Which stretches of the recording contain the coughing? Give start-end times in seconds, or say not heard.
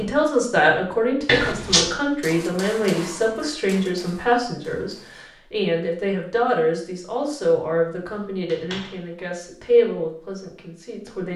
not heard.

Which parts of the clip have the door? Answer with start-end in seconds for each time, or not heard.
1.2-1.9, 8.1-9.1.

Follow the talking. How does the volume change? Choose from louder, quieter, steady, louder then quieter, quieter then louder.
steady.